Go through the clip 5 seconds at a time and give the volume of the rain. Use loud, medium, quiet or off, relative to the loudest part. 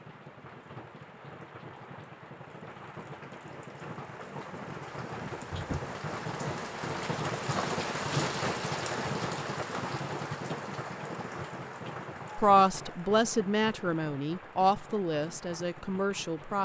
medium, loud, medium, quiet.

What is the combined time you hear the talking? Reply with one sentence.
The talking can be heard for 4 seconds in total.